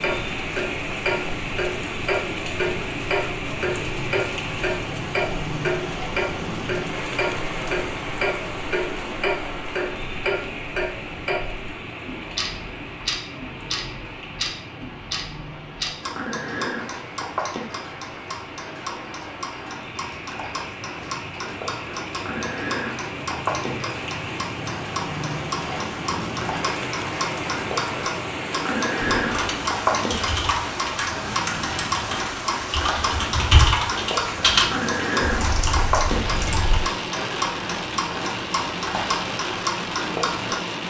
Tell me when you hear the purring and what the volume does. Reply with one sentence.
You can't hear the purring here.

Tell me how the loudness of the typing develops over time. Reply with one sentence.
The volume of the typing goes up, then down.